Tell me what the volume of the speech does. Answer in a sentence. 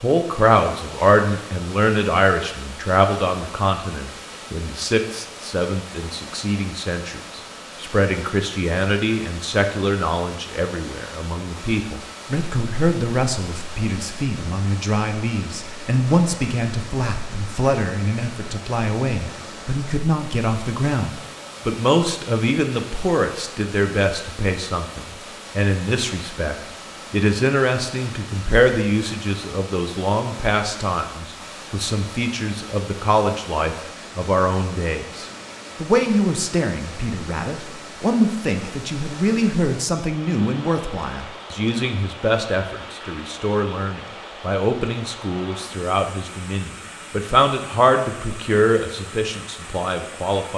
The loudness of the speech stays about the same.